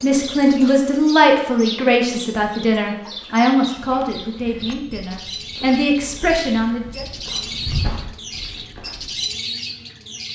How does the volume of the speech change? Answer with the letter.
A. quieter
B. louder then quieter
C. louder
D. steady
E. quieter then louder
E.